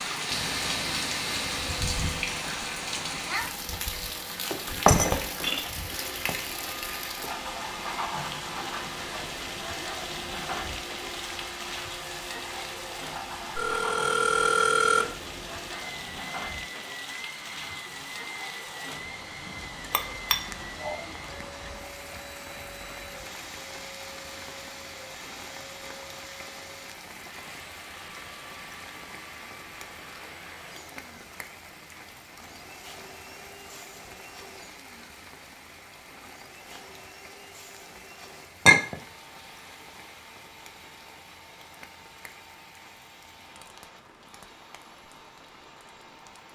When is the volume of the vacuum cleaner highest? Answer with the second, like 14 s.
1 s.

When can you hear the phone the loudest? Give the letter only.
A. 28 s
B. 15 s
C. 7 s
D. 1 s
B.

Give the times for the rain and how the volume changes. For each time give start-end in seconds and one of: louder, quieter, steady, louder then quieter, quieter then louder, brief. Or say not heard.
0.0-46.5 quieter.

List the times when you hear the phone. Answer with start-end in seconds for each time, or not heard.
13.6-15.2.